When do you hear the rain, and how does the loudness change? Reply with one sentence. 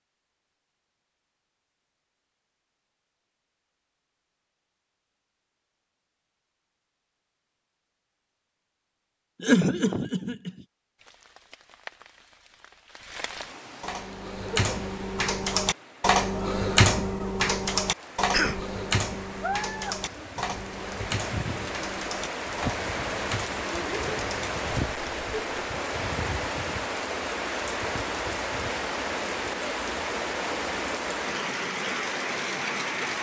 The rain can be heard from 10.9 to 33.1 s, getting louder.